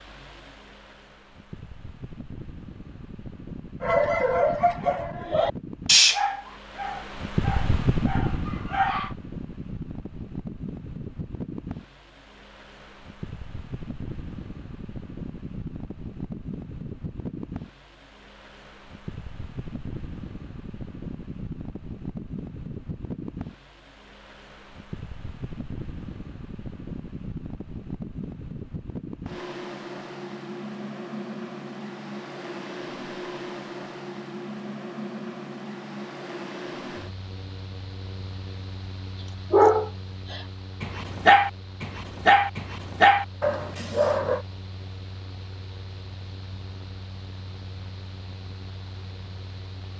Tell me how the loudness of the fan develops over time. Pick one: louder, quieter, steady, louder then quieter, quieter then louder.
quieter.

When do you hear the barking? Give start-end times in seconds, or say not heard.
3.8-9.1, 39.5-44.4.